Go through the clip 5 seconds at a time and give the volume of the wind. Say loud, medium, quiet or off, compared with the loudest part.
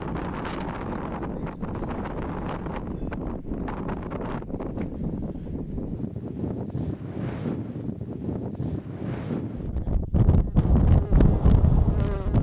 medium, medium, loud.